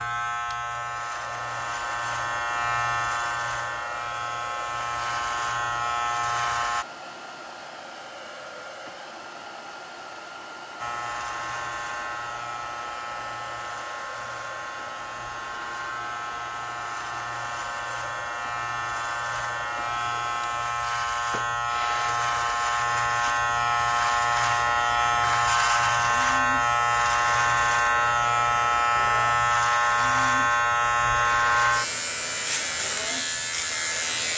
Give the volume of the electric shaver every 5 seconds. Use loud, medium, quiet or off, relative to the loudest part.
medium, medium, quiet, medium, loud, loud, loud.